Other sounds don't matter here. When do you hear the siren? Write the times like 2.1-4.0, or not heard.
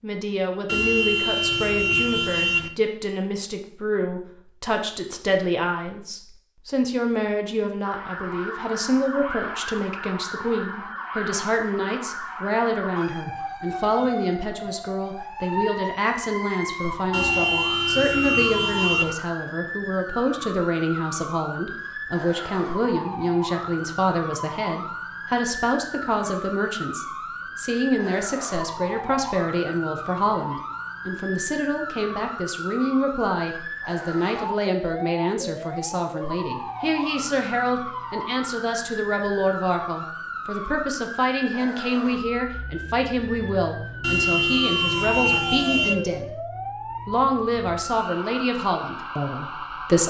7.8-50.0.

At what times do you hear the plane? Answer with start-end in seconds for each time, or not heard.
not heard.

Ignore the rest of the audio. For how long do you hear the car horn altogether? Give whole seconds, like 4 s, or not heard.
6 s.